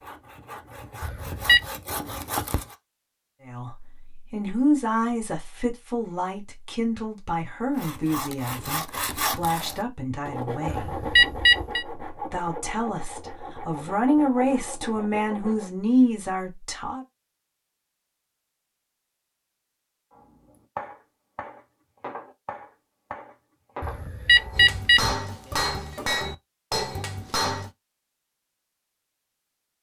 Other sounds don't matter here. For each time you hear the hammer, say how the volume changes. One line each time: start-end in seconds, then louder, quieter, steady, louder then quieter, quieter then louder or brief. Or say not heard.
20.1-27.7 louder.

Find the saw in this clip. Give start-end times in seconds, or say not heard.
0.0-2.8, 7.7-15.7.